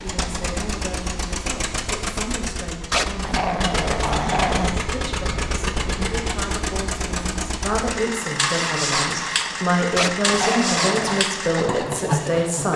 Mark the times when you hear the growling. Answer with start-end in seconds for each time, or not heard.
2.9-4.8, 9.9-11.2.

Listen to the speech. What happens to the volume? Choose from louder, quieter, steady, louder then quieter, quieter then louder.
louder.